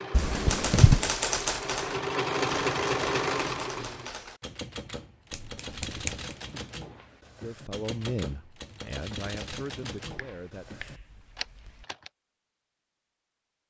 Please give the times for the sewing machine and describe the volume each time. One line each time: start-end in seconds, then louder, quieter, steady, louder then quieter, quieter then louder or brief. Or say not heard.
0.0-4.1 louder.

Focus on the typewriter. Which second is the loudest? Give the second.
1 s.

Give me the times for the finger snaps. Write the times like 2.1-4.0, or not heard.
0.1-1.1, 5.3-6.2, 10.0-11.8.